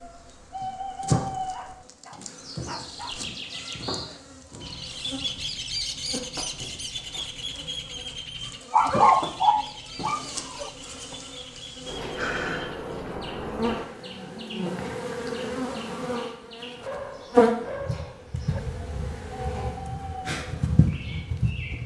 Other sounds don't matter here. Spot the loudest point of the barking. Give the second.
9 s.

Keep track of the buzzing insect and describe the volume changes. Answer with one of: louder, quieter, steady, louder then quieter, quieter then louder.
quieter then louder.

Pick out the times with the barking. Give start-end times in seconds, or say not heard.
1.5-3.4, 8.7-10.7, 16.8-18.6.